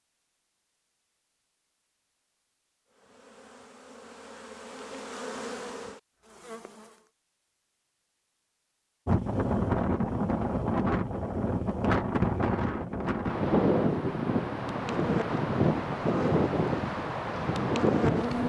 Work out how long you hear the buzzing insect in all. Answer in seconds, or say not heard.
8 s.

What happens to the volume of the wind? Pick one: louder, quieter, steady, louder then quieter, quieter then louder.
steady.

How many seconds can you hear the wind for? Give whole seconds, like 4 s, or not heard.
9 s.